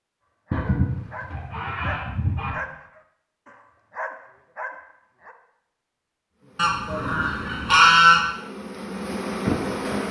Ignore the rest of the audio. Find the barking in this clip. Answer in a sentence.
You can hear the barking from 0.5 to 5.3 s.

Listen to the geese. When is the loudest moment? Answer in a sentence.
The loudest moment of the geese is at 8 seconds.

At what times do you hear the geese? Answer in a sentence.
The geese can be heard from 0.5 to 2.5 s and from 6.5 to 8.2 s.